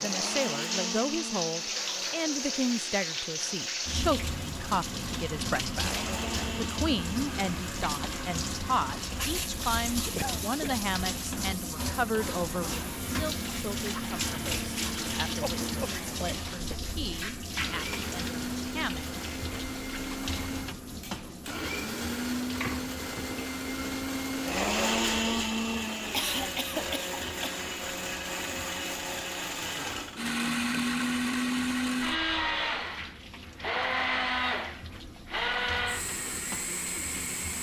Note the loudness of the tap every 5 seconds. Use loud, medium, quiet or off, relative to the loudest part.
loud, loud, loud, loud, medium, quiet, quiet, medium.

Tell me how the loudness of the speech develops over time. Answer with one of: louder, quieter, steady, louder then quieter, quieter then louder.
quieter.